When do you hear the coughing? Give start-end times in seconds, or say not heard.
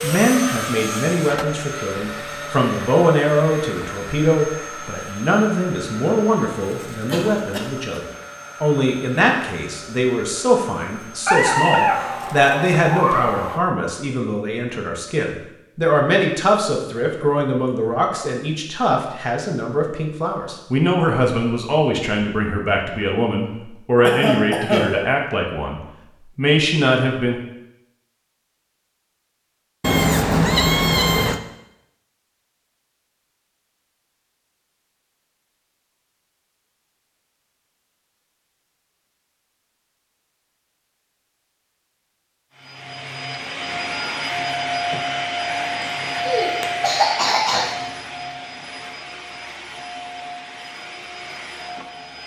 7.0-8.2, 24.0-24.9, 46.2-47.7.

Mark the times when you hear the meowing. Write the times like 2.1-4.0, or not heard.
11.2-13.6, 29.8-31.4.